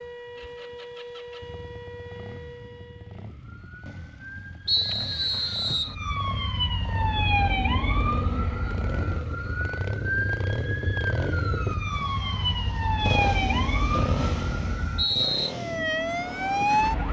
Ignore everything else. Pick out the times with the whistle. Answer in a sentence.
The whistle can be heard from 4.7 to 6.0 s and from 13.9 to 15.6 s.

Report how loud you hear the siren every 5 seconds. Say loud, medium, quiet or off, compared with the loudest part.
quiet, loud, loud, loud.